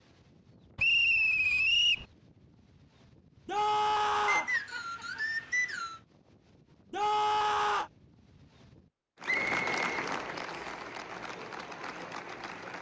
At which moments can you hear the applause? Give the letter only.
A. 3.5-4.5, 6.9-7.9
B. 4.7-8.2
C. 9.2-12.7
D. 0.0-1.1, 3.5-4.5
C.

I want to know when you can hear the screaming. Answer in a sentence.
You can hear the screaming from 3.5 to 4.5 s and from 6.9 to 7.9 s.